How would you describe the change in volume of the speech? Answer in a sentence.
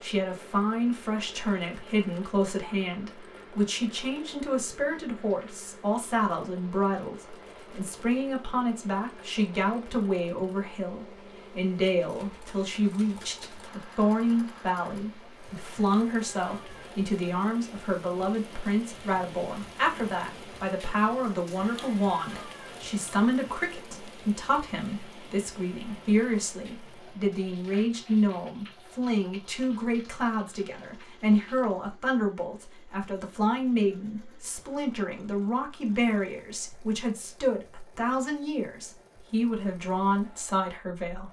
The loudness of the speech stays about the same.